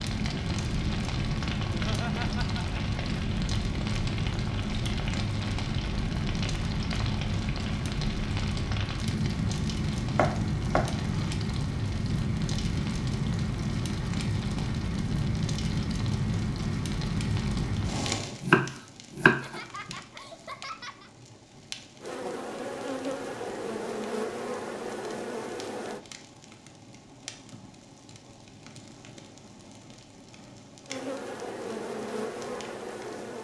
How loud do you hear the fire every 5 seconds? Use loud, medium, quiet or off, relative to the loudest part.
loud, loud, loud, loud, quiet, quiet, quiet.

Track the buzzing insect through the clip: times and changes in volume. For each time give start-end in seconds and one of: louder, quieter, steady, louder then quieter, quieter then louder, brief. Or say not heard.
22.0-26.0 steady
30.9-33.3 brief.